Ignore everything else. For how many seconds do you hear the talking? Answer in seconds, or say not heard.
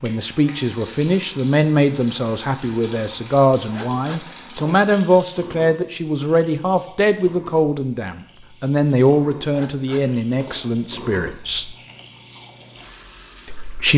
12 s.